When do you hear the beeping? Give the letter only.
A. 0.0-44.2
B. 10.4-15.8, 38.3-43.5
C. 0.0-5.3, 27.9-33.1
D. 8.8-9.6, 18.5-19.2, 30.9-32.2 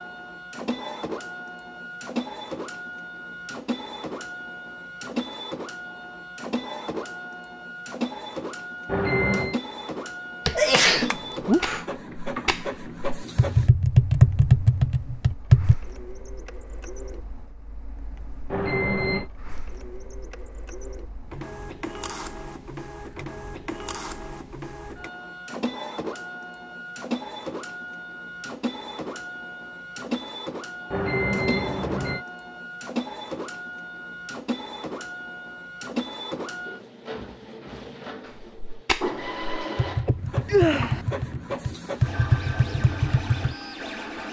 D.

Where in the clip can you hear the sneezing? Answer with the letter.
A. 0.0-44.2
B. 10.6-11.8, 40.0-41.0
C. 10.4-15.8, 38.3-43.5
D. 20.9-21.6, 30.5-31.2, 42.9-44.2
B.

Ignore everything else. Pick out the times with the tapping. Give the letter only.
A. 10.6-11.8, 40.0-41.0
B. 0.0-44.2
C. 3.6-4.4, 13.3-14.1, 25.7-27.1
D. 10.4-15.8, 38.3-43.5
D.